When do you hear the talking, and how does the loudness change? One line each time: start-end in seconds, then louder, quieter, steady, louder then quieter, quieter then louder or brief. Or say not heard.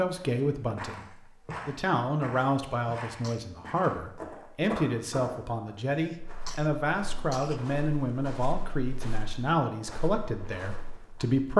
0.0-11.5 steady.